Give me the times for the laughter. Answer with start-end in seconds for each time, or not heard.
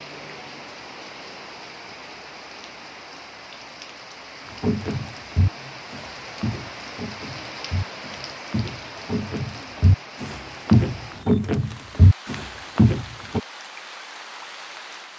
not heard.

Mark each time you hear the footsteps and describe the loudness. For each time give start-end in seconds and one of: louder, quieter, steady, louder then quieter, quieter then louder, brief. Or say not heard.
4.6-13.4 quieter then louder.